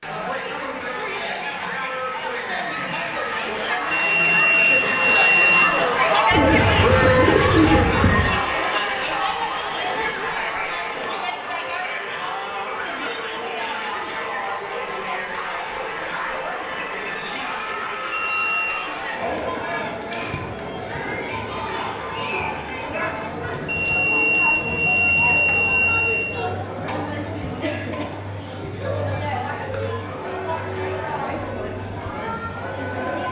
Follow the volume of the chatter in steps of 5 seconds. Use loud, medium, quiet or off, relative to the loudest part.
medium, loud, medium, medium, medium, medium, medium.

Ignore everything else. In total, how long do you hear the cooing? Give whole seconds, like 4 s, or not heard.
2 s.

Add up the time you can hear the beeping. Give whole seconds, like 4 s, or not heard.
5 s.